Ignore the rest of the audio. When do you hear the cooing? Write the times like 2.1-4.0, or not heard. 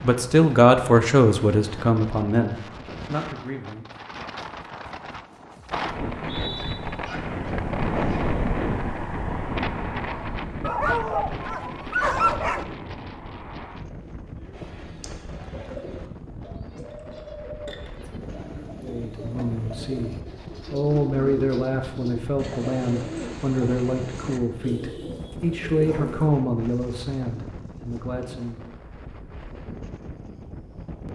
14.5-26.4.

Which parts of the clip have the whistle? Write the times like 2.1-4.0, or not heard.
6.0-6.8.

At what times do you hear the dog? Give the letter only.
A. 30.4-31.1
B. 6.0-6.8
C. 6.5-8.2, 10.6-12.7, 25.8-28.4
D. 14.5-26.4
C.